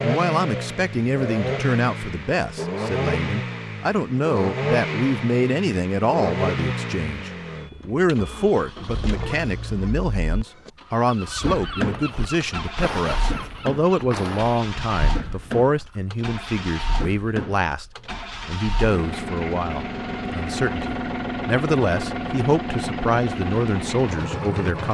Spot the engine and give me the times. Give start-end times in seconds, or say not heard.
0.0-24.8.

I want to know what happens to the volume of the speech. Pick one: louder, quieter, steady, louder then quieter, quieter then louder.
steady.